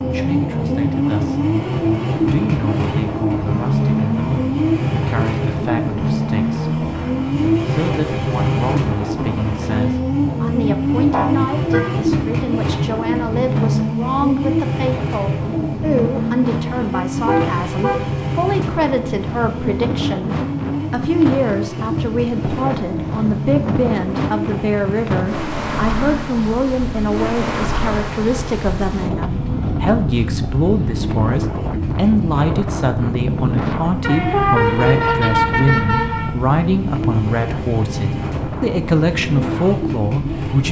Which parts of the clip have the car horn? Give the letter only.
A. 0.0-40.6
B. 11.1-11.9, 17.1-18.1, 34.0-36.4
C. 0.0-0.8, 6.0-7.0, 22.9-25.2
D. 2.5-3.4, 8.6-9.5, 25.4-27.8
B.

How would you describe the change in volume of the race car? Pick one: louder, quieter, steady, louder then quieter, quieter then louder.
quieter.